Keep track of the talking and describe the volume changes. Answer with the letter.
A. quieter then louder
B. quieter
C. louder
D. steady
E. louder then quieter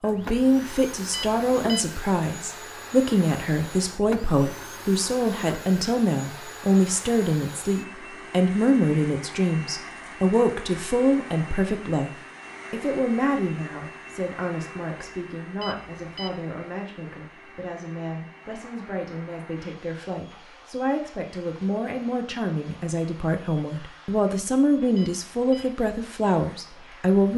A.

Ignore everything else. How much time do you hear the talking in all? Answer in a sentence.
The talking can be heard for 27 seconds in total.